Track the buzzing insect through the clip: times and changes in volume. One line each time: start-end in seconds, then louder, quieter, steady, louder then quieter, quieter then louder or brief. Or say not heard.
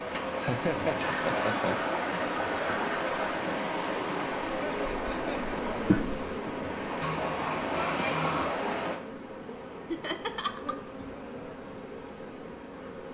0.0-13.0 louder then quieter.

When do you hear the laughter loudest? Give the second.
1 s.